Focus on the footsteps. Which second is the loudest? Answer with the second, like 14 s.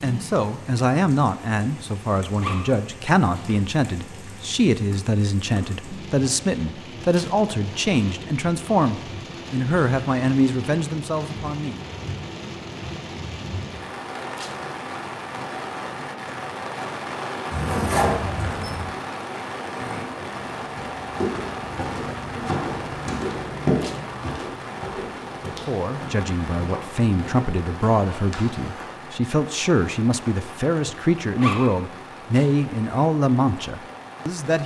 24 s.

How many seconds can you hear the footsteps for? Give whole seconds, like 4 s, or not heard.
9 s.